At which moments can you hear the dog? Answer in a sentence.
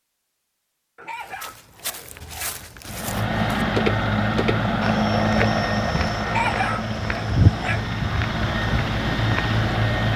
The dog can be heard from 0.9 to 2.6 s and from 6.2 to 7.9 s.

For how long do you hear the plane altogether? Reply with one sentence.
You can hear the plane for 7 seconds altogether.